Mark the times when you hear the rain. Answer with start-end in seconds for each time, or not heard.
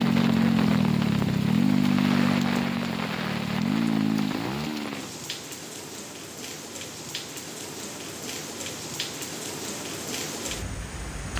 0.0-11.3.